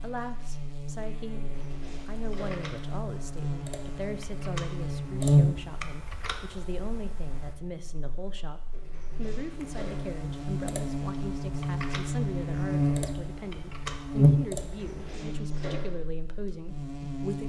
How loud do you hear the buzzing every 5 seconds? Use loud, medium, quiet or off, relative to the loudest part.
medium, loud, loud, medium.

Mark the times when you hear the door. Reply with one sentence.
You can hear the door from 1.4 to 2.7 s, from 8.7 to 10.1 s and from 14.6 to 15.9 s.